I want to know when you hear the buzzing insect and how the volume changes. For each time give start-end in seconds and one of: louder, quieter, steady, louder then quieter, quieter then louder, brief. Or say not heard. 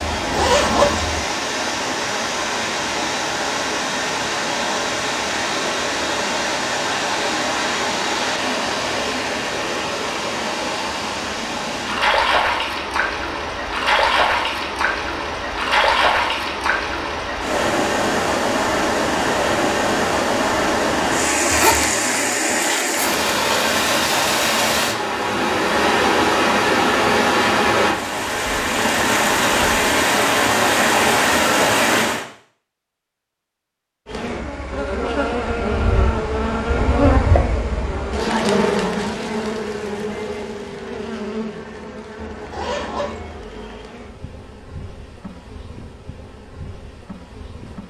34.0-47.8 quieter.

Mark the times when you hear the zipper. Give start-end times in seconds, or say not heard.
0.0-1.2, 21.4-23.2, 42.1-43.4.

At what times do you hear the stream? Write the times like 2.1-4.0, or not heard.
0.0-32.2.